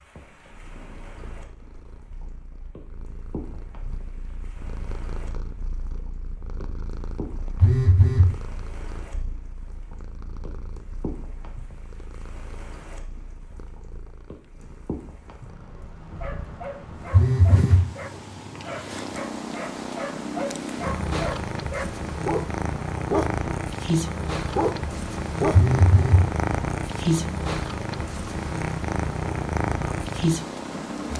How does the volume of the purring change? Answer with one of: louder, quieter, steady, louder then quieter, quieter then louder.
louder.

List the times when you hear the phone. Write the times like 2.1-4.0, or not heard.
7.6-8.3, 17.1-17.9, 25.5-26.2.